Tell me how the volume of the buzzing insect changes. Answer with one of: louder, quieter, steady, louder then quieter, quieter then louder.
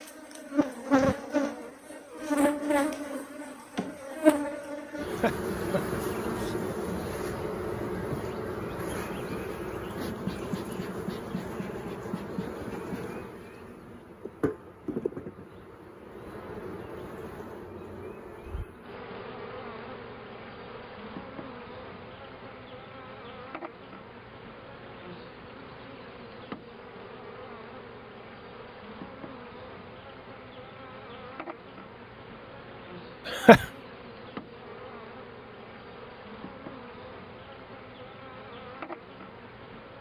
quieter.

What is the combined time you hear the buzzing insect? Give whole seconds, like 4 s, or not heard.
40 s.